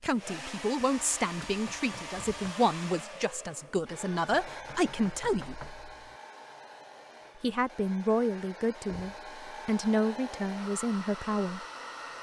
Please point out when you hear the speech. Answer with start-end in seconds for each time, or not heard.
0.0-5.7, 7.4-11.7.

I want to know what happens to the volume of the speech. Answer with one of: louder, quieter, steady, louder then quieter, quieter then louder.
steady.